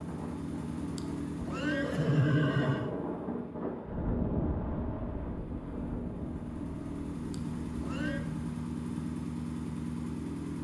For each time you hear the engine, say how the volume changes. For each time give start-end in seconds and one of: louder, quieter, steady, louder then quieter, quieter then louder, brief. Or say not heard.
0.0-10.6 quieter then louder.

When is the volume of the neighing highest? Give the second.
2 s.